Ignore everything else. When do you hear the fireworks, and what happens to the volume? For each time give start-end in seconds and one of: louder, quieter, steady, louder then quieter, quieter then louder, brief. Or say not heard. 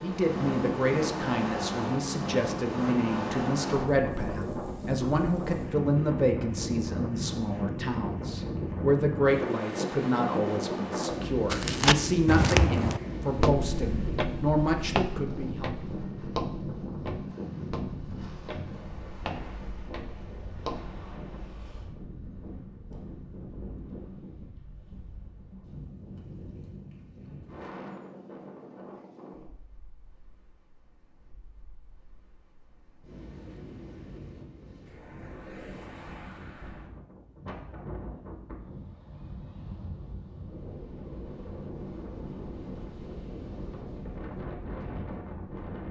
not heard.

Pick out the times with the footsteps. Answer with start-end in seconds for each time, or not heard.
11.5-21.1.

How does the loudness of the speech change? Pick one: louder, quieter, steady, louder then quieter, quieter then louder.
steady.